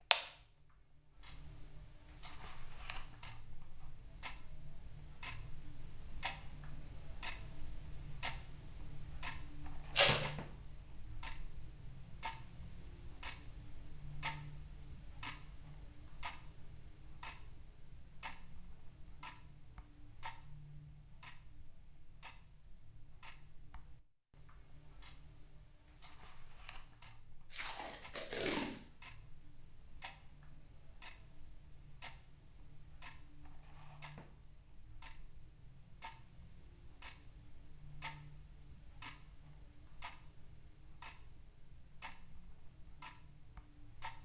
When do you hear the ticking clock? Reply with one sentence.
The ticking clock can be heard from 0.0 to 44.2 s.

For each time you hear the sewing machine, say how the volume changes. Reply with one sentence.
The sewing machine can't be heard in this clip.